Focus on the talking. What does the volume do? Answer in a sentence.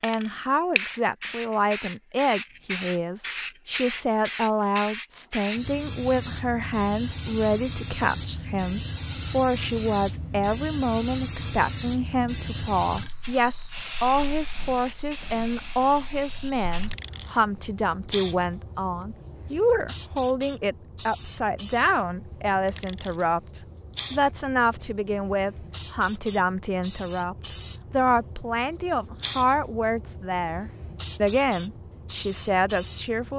The volume of the talking stays about the same.